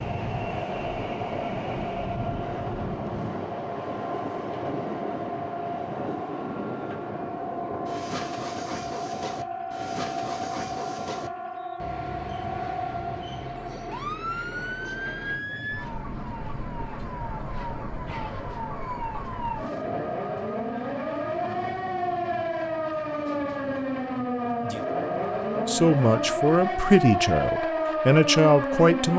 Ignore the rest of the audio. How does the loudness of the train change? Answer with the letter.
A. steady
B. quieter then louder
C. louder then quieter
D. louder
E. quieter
E.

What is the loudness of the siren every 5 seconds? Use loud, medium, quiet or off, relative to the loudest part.
medium, medium, medium, medium, loud, loud.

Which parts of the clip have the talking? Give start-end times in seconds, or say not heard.
25.6-29.1.